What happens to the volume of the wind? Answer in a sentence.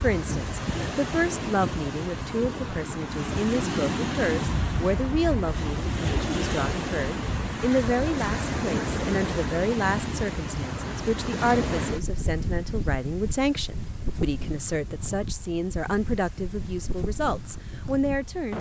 The volume of the wind goes down.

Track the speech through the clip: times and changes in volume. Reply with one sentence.
The speech can be heard from 0.0 to 18.5 s, at a steady volume.